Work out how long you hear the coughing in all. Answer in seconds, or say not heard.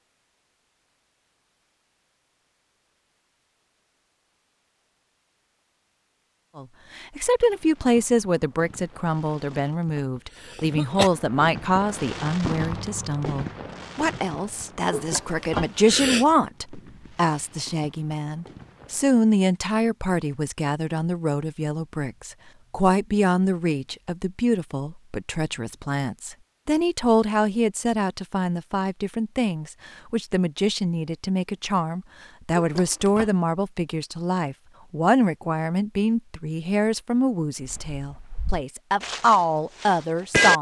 3 s.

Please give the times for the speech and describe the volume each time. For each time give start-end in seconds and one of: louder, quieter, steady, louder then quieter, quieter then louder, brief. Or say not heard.
6.5-40.5 steady.